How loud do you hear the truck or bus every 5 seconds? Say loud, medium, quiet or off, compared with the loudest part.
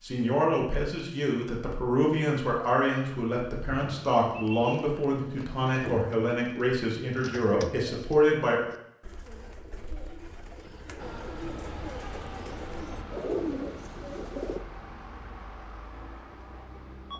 off, off, loud, loud.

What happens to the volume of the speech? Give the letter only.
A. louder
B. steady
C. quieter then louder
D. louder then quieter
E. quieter
B.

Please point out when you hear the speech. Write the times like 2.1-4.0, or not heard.
0.0-8.6.